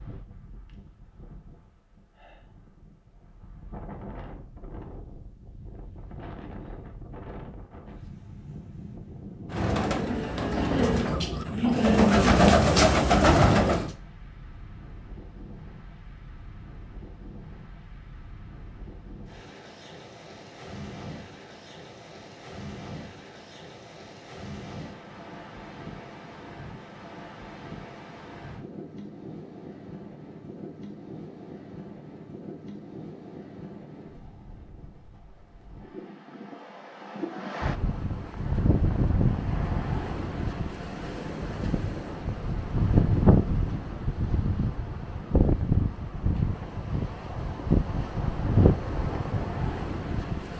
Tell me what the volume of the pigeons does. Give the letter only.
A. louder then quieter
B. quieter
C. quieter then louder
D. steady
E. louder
E.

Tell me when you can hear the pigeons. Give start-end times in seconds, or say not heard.
9.5-13.9.